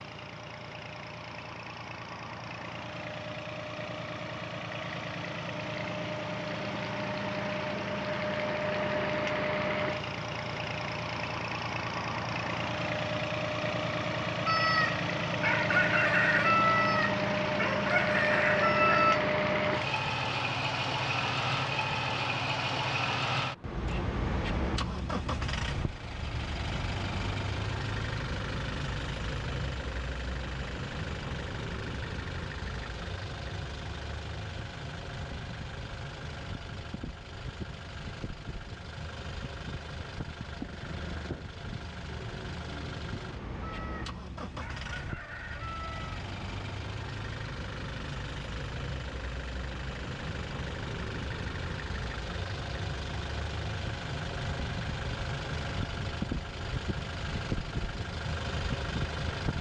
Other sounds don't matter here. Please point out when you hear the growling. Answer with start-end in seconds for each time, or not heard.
40.5-41.5.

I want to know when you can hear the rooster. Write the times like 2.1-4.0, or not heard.
14.4-19.2, 43.6-46.2.